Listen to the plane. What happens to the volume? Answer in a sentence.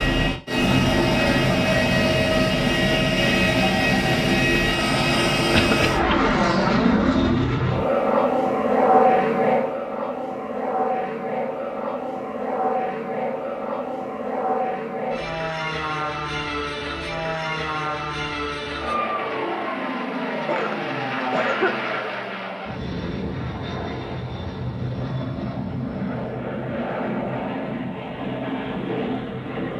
The loudness of the plane goes down.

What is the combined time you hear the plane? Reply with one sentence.
You can hear the plane for 30 seconds altogether.